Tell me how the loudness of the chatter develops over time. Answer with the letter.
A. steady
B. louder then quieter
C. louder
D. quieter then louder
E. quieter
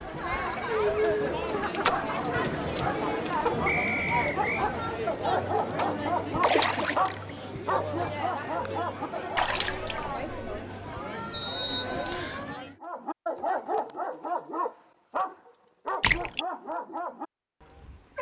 E.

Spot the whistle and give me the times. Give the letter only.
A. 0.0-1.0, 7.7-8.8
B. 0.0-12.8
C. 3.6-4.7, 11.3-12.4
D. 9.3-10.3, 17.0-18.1
C.